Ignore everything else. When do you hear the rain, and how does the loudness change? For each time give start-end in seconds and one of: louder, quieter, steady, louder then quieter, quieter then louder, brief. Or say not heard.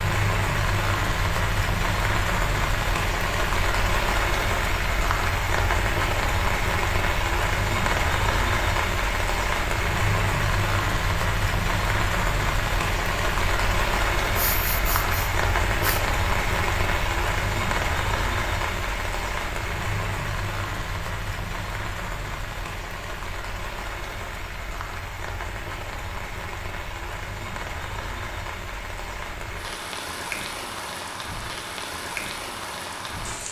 0.0-33.4 quieter.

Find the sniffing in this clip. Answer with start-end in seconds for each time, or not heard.
14.3-16.0.